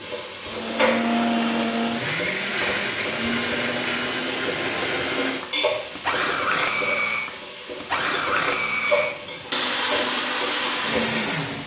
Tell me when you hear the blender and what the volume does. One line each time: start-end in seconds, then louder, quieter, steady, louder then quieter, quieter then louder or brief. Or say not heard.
0.0-11.6 steady.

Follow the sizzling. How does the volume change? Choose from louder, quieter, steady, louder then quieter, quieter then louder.
steady.